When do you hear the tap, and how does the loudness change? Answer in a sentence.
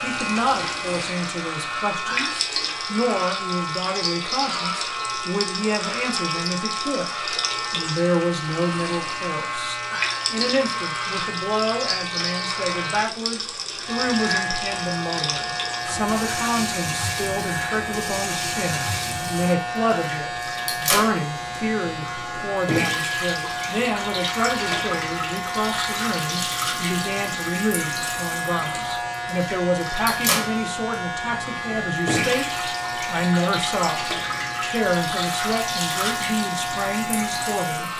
The tap can be heard from 0.0 to 37.9 s, at a steady volume.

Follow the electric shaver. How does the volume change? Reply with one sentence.
The volume of the electric shaver stays about the same.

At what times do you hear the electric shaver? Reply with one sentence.
You can hear the electric shaver from 0.0 to 37.9 s.